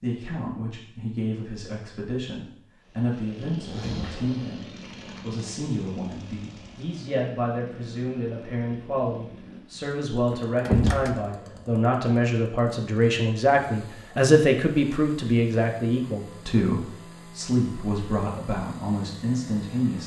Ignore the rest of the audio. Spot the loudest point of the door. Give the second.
11 s.